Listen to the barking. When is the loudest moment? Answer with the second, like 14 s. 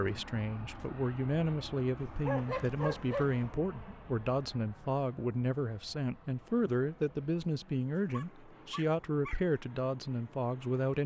2 s.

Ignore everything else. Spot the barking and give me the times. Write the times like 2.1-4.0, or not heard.
2.0-3.3, 8.1-9.6.